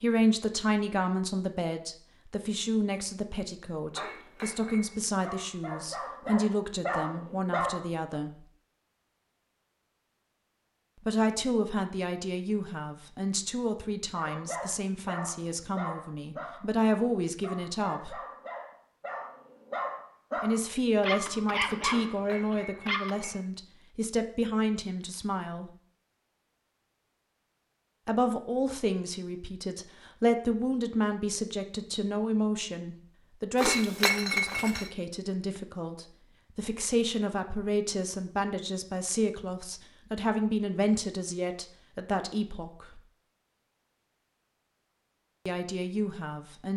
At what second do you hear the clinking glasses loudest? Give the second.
34 s.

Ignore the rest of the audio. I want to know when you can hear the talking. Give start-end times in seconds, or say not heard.
0.0-8.4, 11.0-18.2, 20.4-25.7, 28.1-43.0, 45.5-46.7.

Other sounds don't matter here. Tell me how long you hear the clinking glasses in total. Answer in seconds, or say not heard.
4 s.